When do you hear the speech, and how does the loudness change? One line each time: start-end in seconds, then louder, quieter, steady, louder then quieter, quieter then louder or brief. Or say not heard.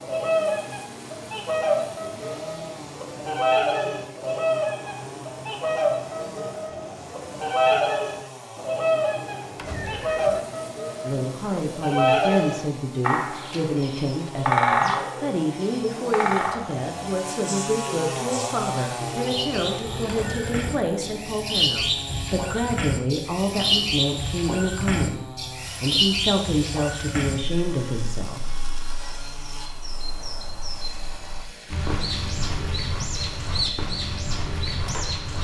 11.0-28.4 steady.